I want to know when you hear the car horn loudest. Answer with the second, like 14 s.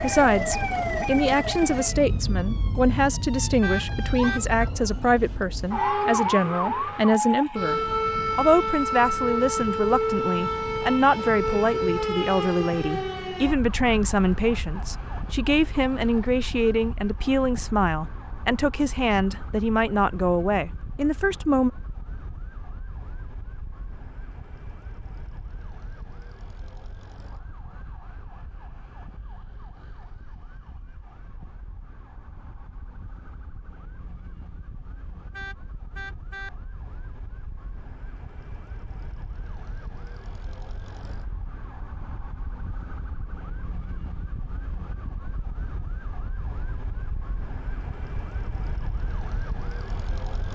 4 s.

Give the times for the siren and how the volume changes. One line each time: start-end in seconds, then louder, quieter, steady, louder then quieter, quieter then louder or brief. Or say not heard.
0.0-50.5 quieter then louder.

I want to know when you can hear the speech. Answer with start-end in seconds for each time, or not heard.
0.0-21.7.